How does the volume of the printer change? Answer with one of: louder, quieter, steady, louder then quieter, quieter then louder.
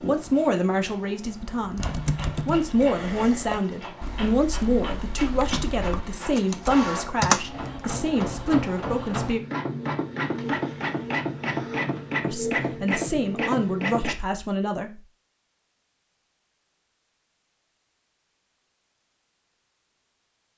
louder.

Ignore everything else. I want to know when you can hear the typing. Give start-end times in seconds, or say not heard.
1.6-7.6.